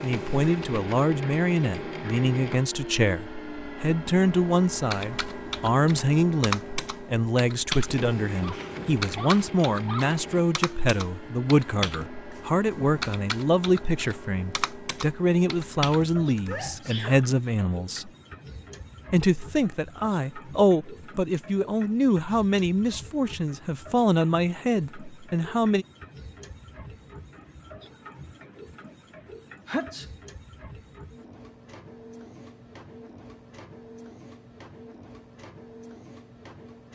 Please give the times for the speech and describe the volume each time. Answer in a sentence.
The speech can be heard from 0.0 to 18.1 s, at a steady volume; and from 19.1 to 25.9 s, at a steady volume.